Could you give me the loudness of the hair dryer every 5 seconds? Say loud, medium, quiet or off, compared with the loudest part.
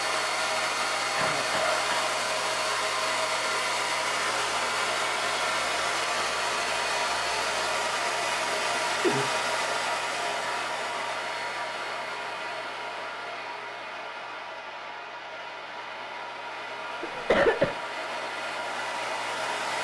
loud, loud, medium, medium.